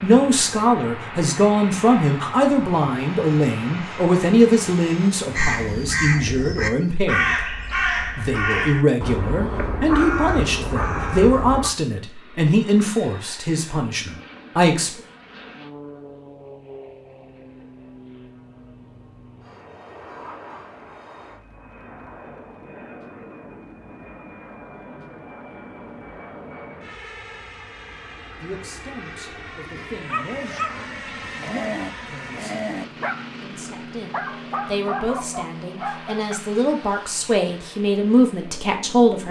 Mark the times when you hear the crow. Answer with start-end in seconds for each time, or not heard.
5.3-11.7.